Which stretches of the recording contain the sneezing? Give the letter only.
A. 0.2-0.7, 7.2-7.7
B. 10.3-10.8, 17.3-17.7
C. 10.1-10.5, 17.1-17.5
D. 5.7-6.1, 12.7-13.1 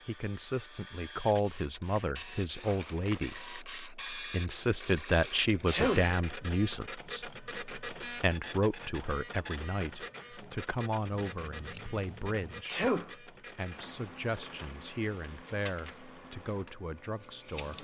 D.